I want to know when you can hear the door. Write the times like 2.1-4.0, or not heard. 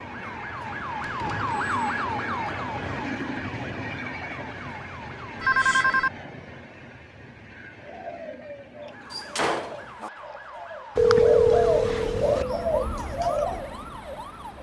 9.1-10.1.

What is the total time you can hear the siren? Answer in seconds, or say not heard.
11 s.